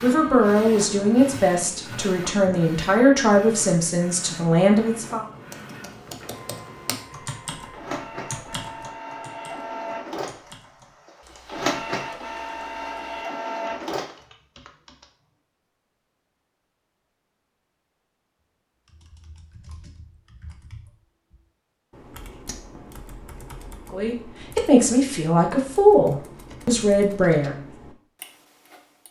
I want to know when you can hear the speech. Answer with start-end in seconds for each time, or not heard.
0.0-5.2, 23.9-27.6.